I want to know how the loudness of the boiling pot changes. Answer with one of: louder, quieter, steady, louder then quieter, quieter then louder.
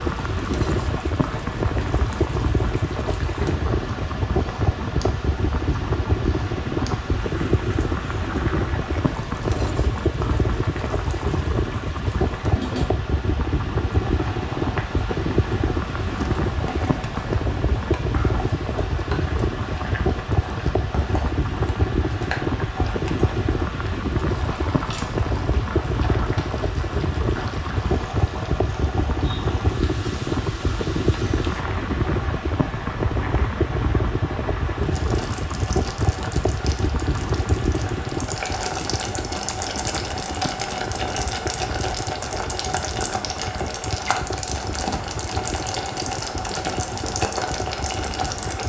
louder.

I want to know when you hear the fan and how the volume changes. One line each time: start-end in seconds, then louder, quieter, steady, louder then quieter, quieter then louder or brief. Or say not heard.
0.0-48.6 quieter.